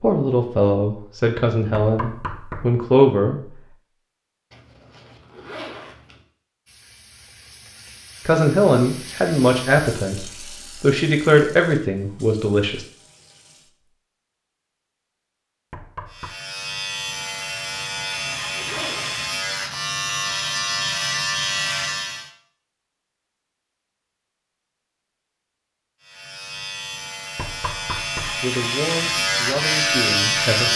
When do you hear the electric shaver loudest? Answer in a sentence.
The loudest moment of the electric shaver is at 30 seconds.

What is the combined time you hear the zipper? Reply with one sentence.
You can hear the zipper for 3 seconds altogether.